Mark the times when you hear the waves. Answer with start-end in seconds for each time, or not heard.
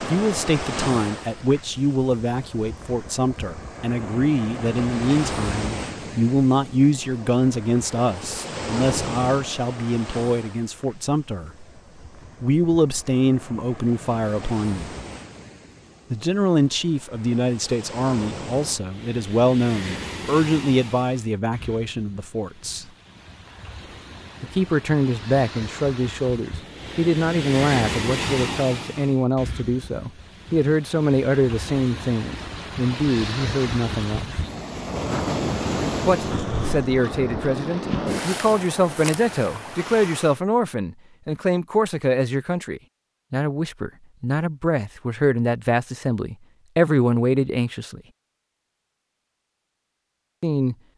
0.0-40.4.